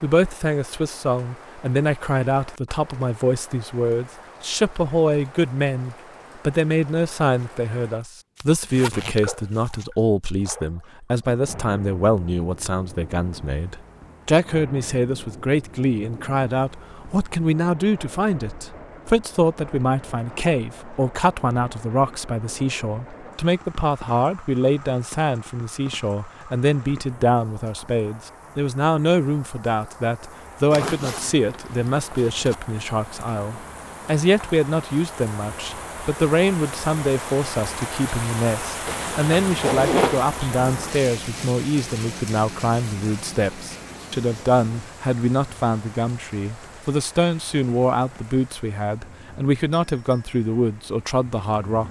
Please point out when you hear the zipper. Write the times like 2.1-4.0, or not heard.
8.3-9.8, 30.7-32.5, 38.9-40.2.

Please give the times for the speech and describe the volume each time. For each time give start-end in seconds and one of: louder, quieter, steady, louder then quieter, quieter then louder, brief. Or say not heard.
0.0-51.8 steady.